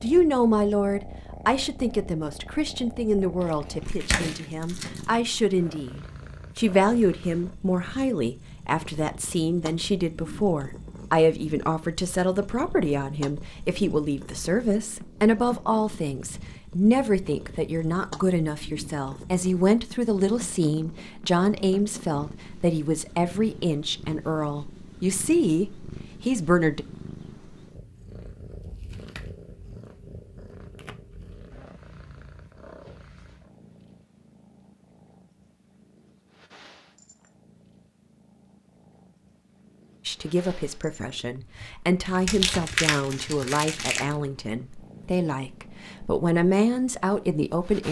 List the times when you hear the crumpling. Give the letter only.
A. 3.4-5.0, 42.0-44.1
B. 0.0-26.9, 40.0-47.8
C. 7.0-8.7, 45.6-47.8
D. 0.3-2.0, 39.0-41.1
A.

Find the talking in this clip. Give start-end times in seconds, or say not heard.
0.0-26.9, 40.0-47.8.